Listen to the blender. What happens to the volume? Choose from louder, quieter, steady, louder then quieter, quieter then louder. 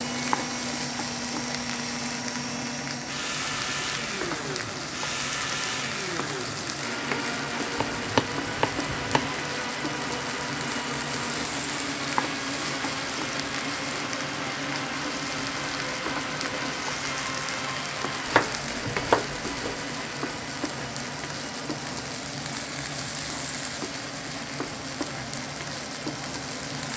quieter.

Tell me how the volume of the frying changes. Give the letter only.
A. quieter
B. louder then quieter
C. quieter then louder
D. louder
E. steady
E.